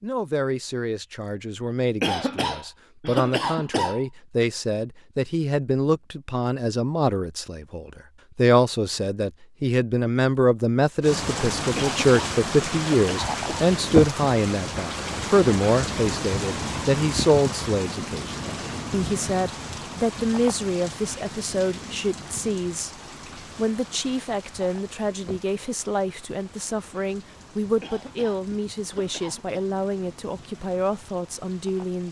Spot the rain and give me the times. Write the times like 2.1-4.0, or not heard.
11.0-32.0.